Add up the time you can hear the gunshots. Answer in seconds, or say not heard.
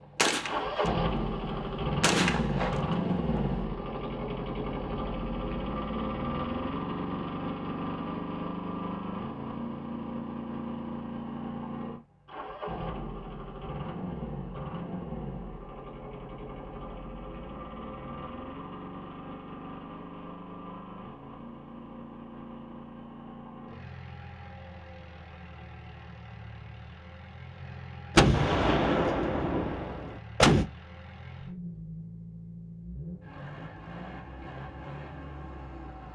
6 s.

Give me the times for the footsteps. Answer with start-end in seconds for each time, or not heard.
not heard.